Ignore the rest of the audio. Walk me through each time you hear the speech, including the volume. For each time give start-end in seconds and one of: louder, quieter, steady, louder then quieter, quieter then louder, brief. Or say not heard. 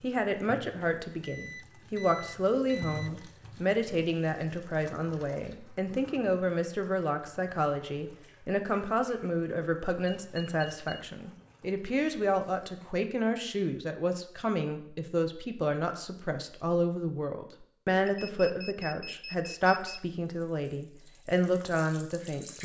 0.0-22.6 steady.